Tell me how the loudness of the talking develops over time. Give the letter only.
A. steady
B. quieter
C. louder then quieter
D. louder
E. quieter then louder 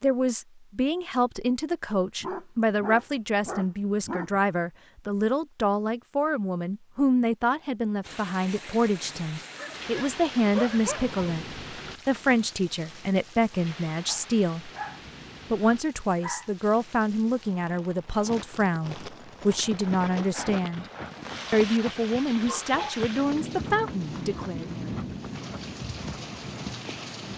A.